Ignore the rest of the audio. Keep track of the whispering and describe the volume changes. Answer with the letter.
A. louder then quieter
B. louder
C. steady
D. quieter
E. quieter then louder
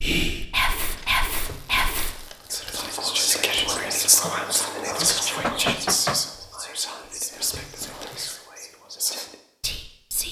D.